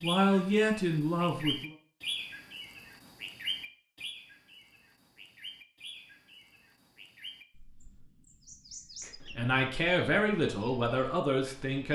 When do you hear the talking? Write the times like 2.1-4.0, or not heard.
0.0-1.7, 9.1-11.9.